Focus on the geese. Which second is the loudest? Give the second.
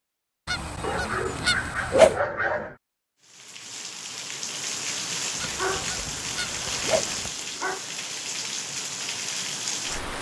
2 s.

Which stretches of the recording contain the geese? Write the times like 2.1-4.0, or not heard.
0.5-2.1, 5.3-7.3.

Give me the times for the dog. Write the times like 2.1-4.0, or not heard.
0.8-2.8, 5.3-7.8.